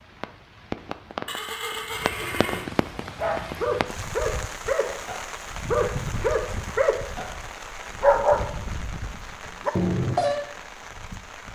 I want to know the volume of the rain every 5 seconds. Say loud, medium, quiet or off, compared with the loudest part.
loud, loud, medium.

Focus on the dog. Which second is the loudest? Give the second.
8 s.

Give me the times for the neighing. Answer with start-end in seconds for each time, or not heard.
1.2-2.7.